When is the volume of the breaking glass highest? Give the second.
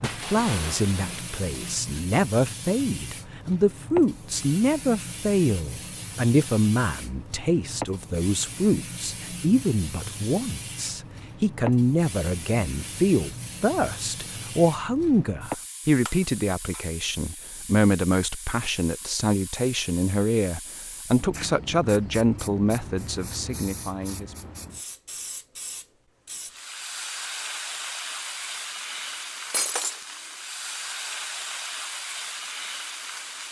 30 s.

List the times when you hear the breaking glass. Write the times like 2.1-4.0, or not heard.
0.0-2.0, 16.1-16.9, 29.5-30.0.